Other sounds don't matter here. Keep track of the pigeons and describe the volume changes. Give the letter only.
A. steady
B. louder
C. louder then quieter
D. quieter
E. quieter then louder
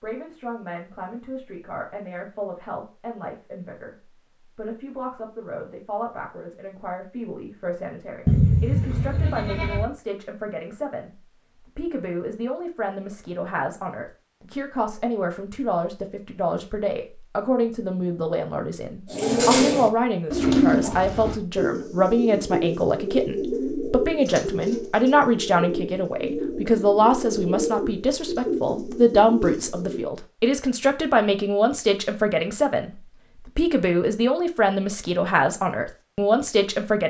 D.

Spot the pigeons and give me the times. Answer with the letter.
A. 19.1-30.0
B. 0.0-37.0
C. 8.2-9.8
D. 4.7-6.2
A.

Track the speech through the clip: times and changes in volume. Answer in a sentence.
The speech can be heard from 0.0 to 37.0 s, getting louder.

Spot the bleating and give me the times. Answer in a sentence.
You can hear the bleating from 8.2 to 9.8 s.